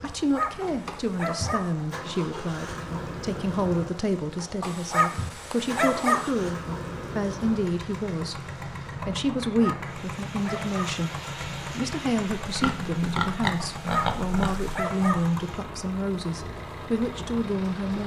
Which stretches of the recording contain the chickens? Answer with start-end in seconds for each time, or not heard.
not heard.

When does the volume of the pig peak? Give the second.
13 s.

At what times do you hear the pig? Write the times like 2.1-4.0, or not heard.
12.4-14.8.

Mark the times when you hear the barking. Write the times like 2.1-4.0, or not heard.
0.0-1.8, 4.6-6.3, 9.4-11.0, 13.8-15.3.